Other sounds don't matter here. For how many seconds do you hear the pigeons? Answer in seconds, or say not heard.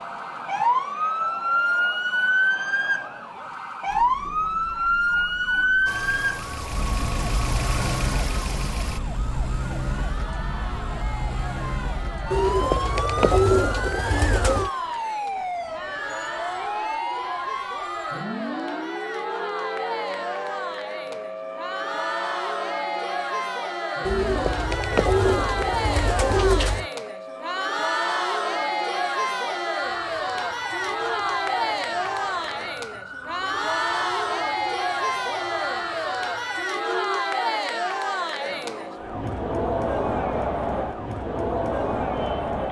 5 s.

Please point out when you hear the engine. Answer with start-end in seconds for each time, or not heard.
5.8-9.0.